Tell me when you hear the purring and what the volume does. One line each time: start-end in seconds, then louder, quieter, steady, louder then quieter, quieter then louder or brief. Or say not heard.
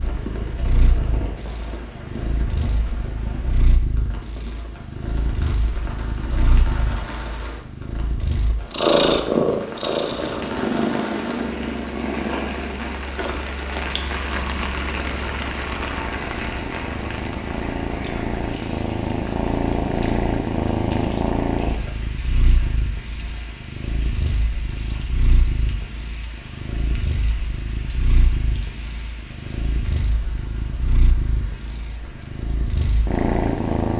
0.0-33.9 louder then quieter.